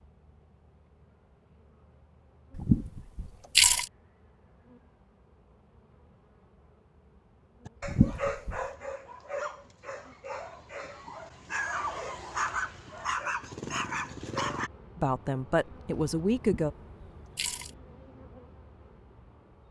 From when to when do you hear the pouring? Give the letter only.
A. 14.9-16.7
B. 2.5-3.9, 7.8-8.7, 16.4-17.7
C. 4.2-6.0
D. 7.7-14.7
B.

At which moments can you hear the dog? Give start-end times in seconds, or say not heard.
7.7-14.7.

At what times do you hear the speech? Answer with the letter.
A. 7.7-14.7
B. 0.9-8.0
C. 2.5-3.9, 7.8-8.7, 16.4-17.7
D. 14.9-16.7
D.